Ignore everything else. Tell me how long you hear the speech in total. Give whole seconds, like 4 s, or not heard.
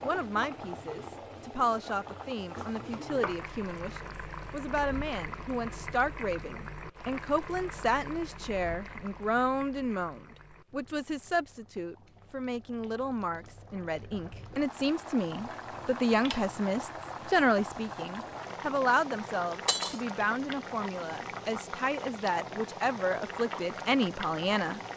25 s.